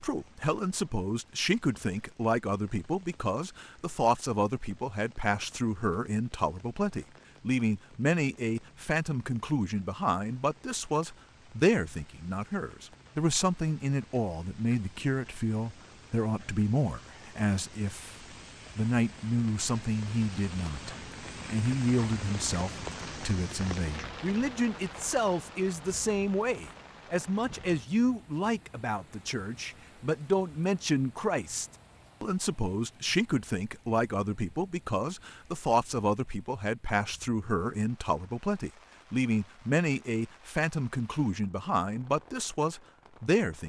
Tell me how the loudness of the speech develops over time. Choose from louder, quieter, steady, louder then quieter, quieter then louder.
steady.